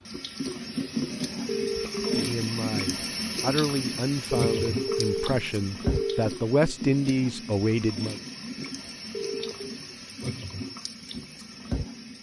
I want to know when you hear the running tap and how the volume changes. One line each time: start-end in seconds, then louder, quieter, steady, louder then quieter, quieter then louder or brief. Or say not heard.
0.0-12.1 quieter.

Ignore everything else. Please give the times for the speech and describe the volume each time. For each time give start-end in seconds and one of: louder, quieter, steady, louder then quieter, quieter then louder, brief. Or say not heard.
2.1-8.2 louder.